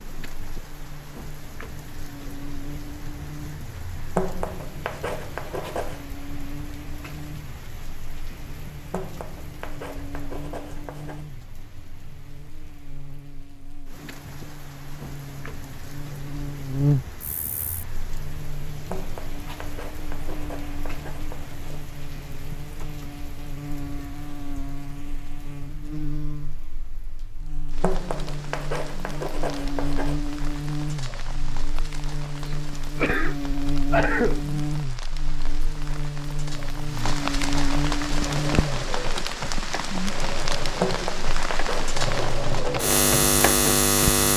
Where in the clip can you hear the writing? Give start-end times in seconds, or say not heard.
4.2-6.0, 8.9-11.2, 18.9-21.8, 27.8-30.2, 40.8-42.5.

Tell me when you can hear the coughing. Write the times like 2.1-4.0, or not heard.
32.5-34.4.